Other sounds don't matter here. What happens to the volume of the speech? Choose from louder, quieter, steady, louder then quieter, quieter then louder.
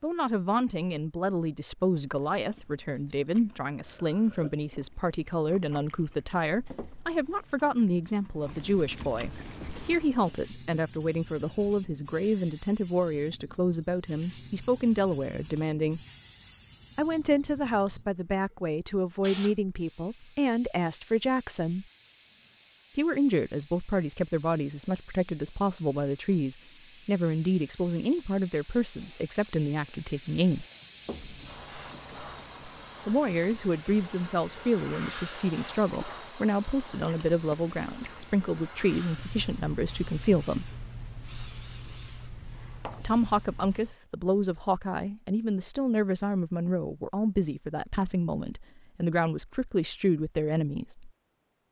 steady.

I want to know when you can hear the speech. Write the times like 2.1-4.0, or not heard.
0.0-16.0, 16.9-21.9, 22.9-30.6, 33.0-40.8, 43.0-51.1.